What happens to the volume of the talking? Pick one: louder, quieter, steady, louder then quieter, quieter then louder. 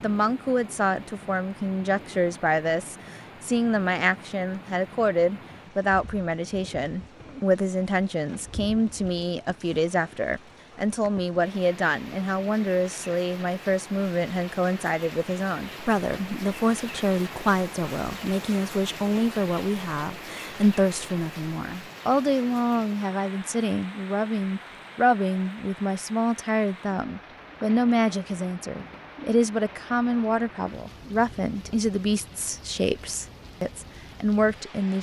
steady.